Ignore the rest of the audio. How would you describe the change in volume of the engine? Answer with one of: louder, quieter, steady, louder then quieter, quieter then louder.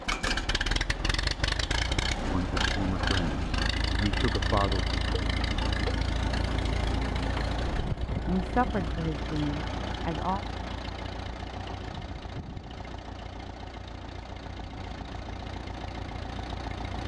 quieter.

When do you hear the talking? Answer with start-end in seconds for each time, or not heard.
2.2-4.8, 8.2-10.4.